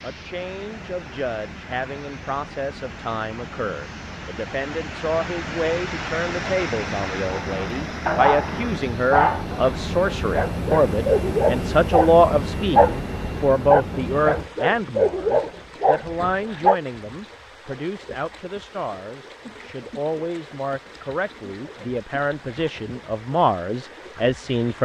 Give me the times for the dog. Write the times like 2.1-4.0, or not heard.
7.3-16.8.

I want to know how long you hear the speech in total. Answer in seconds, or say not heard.
25 s.